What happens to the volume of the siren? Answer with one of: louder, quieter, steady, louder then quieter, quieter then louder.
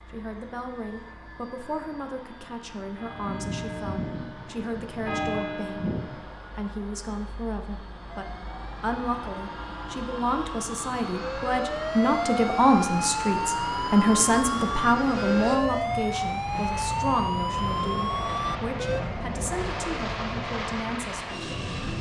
louder.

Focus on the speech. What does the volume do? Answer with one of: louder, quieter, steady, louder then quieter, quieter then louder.
louder then quieter.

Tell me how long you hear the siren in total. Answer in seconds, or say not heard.
11 s.